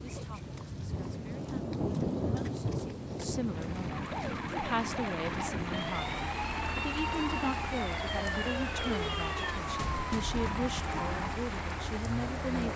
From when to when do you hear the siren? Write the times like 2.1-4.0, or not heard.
3.9-11.3.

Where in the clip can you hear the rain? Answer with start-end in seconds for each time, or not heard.
0.0-12.7.